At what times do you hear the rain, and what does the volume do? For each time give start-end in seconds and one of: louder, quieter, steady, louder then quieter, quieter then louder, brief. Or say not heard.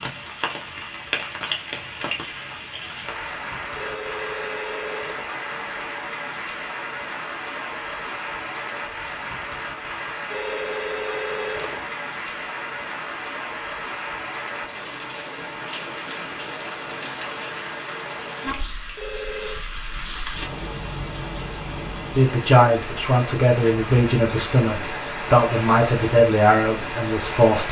0.0-27.6 steady.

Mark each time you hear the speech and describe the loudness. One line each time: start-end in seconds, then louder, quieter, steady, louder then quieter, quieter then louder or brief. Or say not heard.
22.1-27.6 steady.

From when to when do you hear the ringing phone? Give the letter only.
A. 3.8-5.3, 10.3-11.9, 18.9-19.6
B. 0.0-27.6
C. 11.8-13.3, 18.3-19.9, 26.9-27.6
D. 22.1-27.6
A.